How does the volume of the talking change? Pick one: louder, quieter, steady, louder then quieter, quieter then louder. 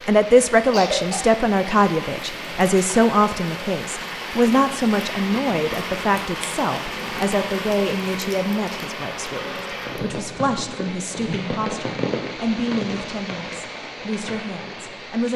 quieter.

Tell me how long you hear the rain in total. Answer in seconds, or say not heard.
15 s.